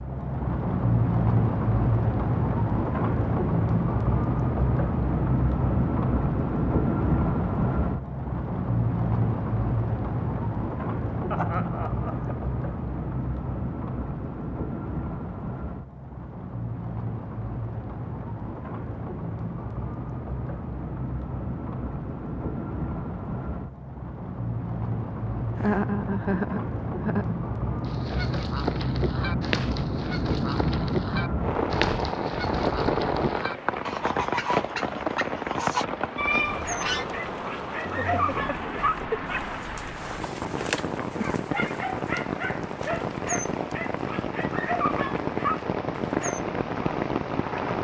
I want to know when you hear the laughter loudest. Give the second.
26 s.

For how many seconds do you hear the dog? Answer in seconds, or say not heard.
10 s.